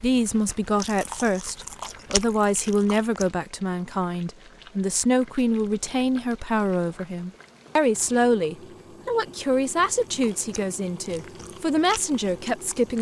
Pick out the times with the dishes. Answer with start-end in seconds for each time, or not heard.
not heard.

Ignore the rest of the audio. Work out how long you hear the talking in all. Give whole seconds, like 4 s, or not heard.
13 s.